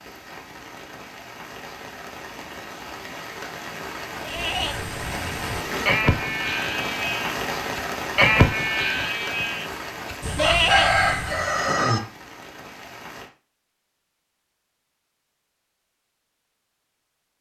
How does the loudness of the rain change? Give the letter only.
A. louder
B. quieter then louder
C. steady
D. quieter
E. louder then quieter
E.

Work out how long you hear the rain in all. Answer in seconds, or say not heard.
13 s.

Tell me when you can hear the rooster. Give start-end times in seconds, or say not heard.
10.3-12.0.